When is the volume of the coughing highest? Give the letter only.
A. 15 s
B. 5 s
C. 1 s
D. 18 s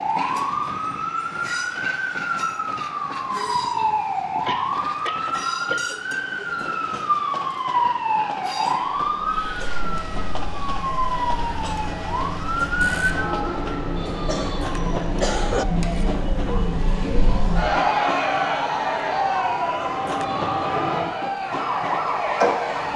A.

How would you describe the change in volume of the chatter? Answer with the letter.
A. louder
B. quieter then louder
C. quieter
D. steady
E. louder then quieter
E.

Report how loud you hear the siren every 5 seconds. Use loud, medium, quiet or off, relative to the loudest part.
loud, loud, loud, medium, loud.